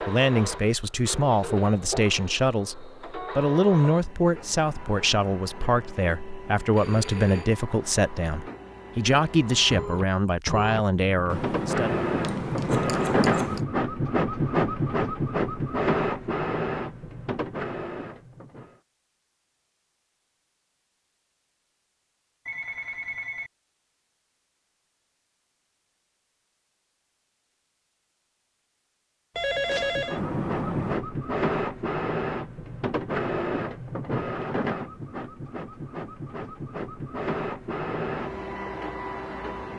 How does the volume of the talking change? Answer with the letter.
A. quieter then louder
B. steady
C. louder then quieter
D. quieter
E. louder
B.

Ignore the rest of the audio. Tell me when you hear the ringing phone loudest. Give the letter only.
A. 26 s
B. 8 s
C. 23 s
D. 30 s
D.